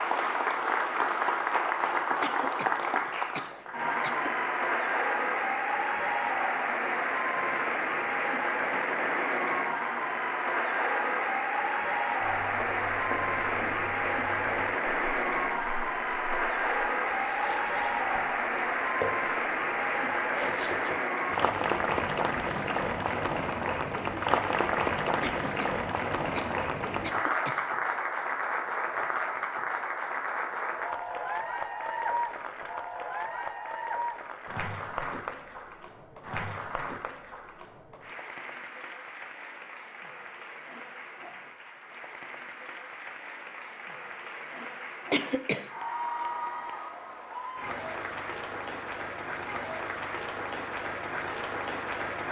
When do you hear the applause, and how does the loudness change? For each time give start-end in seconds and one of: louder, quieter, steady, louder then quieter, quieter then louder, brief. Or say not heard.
0.0-52.2 quieter.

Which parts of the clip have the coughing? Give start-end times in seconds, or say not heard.
2.2-4.3, 25.2-27.7, 45.1-45.7.